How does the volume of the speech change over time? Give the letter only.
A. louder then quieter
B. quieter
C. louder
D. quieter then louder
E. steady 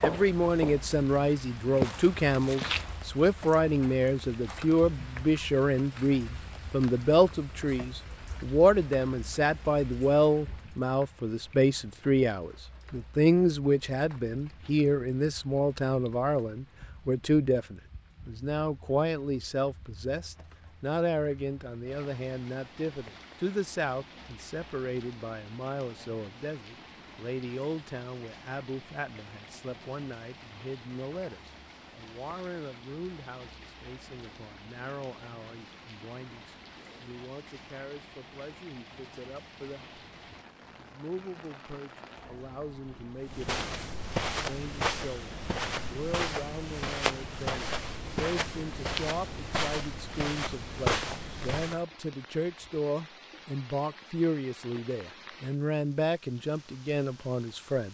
D.